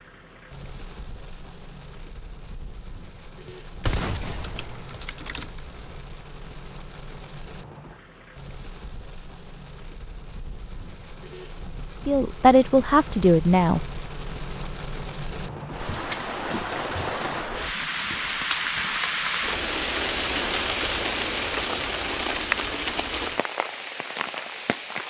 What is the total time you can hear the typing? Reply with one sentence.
You can hear the typing for 2 seconds altogether.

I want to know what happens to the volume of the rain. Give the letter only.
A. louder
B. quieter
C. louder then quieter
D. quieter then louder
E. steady
A.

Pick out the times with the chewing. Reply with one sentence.
You can't hear the chewing here.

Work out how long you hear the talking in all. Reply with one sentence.
The talking can be heard for 2 seconds in total.